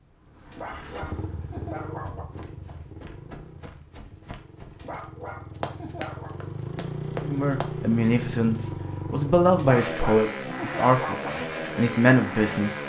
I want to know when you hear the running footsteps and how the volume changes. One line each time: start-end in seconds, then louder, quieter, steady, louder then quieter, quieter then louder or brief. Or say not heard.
2.0-7.7 louder.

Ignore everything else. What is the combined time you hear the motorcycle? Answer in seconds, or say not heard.
13 s.